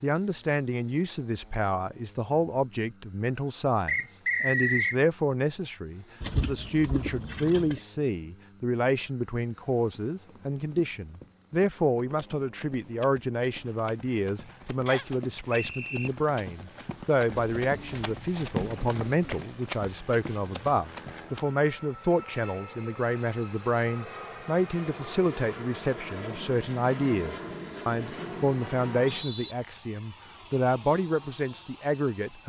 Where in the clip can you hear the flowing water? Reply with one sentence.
You can't hear the flowing water here.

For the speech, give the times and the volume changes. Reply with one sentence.
The speech can be heard from 0.0 to 32.4 s, at a steady volume.